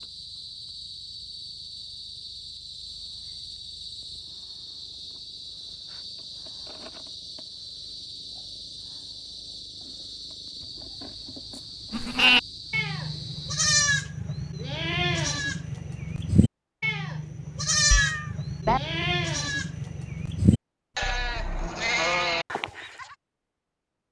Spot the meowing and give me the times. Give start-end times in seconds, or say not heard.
17.9-18.8.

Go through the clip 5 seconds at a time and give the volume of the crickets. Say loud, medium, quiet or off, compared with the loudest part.
loud, loud, loud, off, off.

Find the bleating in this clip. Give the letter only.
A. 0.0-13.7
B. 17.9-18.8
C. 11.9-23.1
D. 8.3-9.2
C.